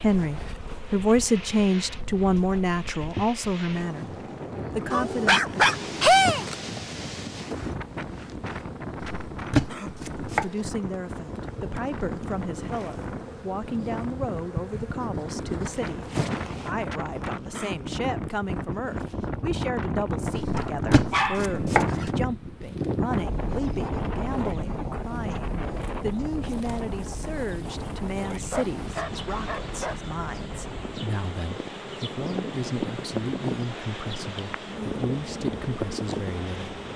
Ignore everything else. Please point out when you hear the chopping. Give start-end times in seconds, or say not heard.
9.0-10.4, 20.4-22.1.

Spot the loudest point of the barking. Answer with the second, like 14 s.
6 s.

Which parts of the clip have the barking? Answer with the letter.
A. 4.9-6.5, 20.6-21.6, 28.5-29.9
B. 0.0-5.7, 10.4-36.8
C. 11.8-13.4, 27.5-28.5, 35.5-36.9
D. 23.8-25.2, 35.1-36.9
A.